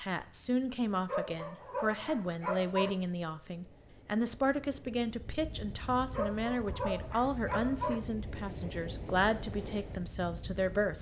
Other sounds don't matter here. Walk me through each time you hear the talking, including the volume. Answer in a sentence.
The talking can be heard from 0.0 to 10.9 s, at a steady volume.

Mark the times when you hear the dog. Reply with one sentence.
The dog can be heard from 1.1 to 3.0 s and from 6.1 to 8.0 s.